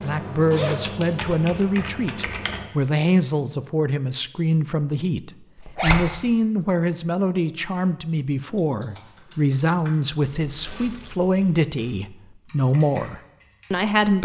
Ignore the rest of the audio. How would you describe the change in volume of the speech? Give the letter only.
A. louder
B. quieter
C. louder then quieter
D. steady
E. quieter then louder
D.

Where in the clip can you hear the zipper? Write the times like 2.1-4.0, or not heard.
0.0-1.2, 5.5-6.0, 10.7-11.1.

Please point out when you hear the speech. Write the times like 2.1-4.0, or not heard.
0.0-14.1.